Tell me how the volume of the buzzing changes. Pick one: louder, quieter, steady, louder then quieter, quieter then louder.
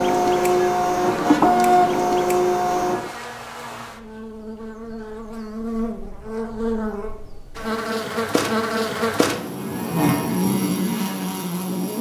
louder.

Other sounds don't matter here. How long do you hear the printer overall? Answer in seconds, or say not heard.
3 s.